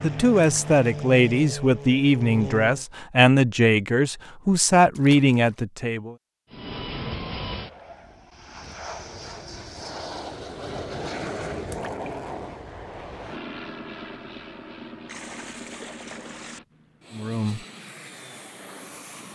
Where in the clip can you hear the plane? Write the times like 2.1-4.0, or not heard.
0.0-2.9, 6.5-19.3.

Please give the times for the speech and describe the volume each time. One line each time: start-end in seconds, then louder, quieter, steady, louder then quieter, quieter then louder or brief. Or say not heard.
0.0-6.2 steady
17.1-17.6 brief.